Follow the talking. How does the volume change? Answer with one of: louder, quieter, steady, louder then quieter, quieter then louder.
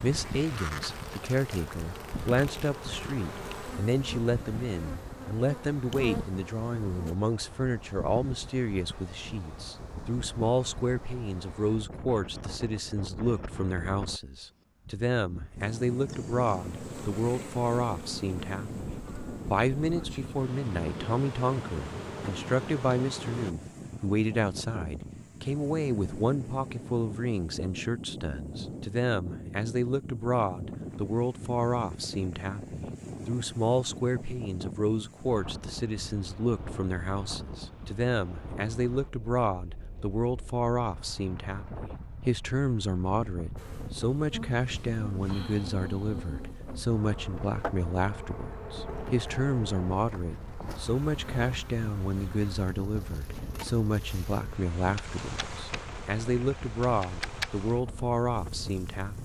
steady.